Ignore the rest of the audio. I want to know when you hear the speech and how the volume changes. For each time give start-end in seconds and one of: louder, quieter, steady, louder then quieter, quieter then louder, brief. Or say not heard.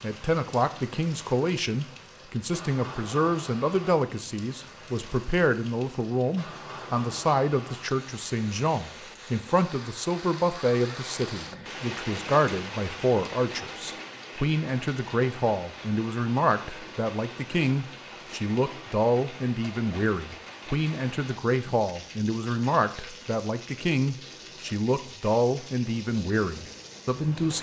0.0-27.5 steady.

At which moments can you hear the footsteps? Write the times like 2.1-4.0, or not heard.
not heard.